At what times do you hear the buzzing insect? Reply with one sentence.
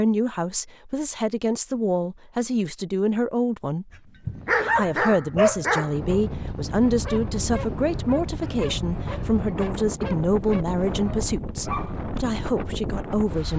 You can't hear the buzzing insect here.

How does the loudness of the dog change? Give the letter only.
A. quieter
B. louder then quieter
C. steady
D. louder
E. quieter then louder
A.